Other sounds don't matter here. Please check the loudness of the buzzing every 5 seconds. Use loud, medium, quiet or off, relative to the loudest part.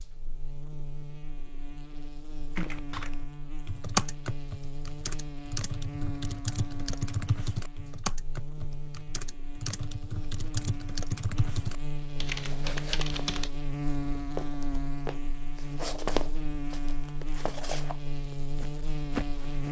medium, medium, loud, loud.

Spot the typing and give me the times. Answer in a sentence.
You can hear the typing from 2.5 to 13.5 s.